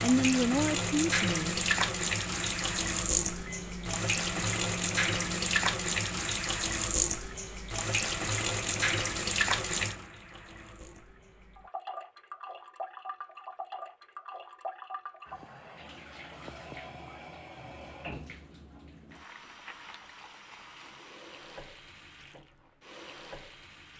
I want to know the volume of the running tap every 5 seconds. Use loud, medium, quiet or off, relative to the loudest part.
loud, loud, quiet, quiet, quiet.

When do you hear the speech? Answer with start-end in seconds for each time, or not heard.
0.0-1.6.